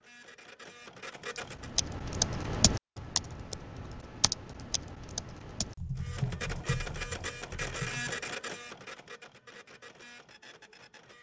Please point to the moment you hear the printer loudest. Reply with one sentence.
The volume of the printer peaks at 8 seconds.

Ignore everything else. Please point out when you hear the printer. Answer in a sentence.
The printer can be heard from 0.0 to 1.7 s and from 6.0 to 11.1 s.